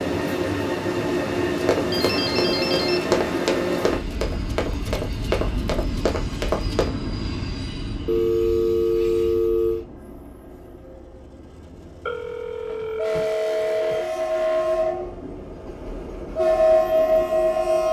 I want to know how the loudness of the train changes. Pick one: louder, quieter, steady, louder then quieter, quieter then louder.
quieter then louder.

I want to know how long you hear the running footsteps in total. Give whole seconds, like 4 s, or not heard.
5 s.